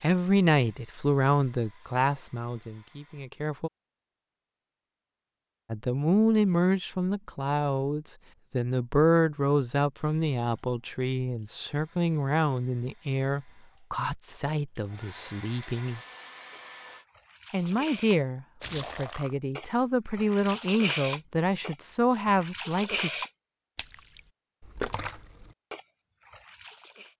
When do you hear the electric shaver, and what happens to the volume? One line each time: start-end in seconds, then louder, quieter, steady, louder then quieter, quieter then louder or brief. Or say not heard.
not heard.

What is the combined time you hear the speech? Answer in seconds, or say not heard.
20 s.